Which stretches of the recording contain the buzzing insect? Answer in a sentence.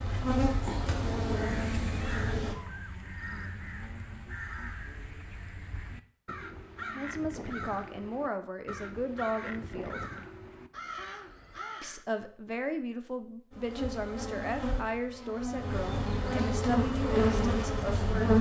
The buzzing insect can be heard from 0.0 to 2.5 s and from 13.5 to 18.3 s.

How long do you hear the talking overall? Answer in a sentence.
You can hear the talking for 10 seconds altogether.